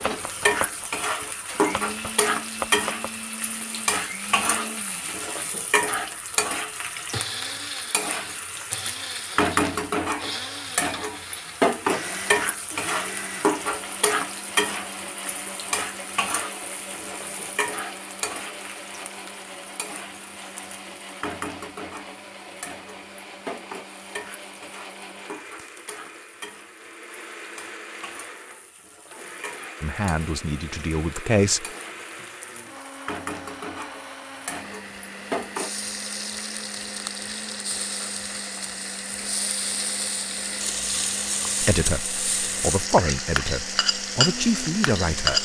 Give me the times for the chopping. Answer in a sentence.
The chopping can be heard from 0.0 to 3.3 s.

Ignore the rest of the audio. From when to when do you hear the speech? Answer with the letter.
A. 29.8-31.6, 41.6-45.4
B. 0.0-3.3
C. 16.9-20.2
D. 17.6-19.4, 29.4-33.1
A.